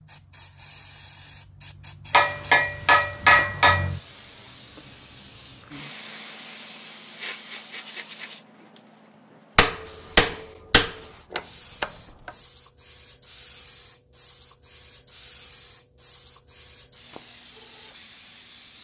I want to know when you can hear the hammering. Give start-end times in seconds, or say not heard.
2.1-3.9, 9.6-12.3.